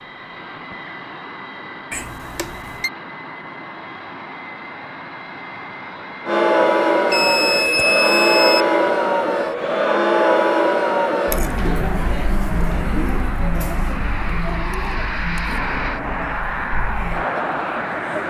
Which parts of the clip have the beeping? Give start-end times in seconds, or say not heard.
1.9-2.9, 7.1-8.7, 15.5-16.4.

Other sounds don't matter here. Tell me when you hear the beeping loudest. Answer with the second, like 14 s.
8 s.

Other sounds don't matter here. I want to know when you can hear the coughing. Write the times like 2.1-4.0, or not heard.
not heard.